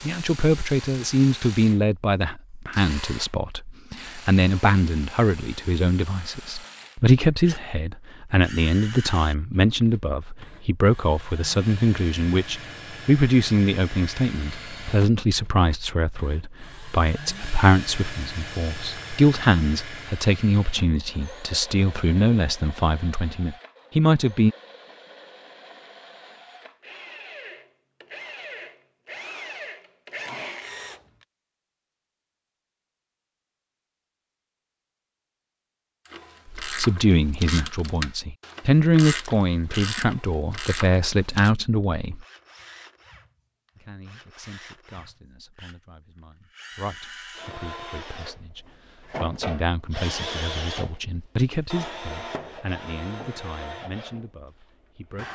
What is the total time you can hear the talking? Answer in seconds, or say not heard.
42 s.